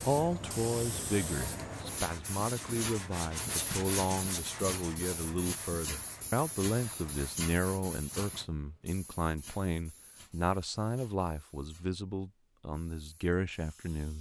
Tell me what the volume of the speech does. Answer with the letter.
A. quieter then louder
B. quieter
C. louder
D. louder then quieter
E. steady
E.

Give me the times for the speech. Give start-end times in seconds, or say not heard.
0.0-14.1.